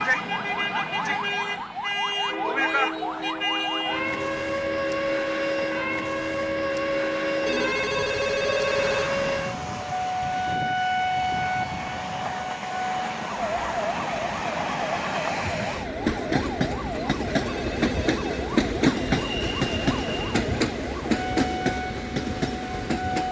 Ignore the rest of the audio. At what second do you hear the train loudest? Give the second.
19 s.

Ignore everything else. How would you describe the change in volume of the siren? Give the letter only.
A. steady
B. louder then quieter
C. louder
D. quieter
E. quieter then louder
D.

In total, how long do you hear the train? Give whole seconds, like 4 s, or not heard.
23 s.